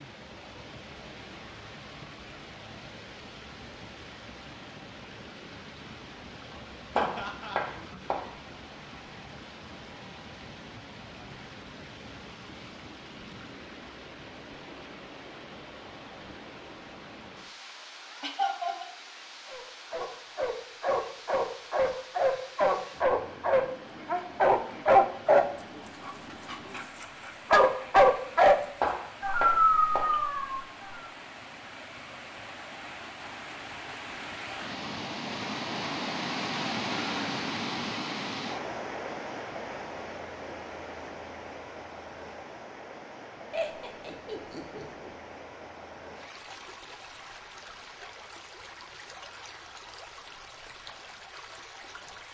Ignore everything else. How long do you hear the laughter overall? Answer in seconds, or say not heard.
3 s.